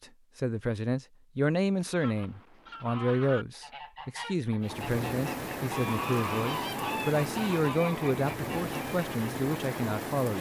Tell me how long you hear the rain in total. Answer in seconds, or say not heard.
6 s.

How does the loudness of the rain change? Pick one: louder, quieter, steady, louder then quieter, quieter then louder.
steady.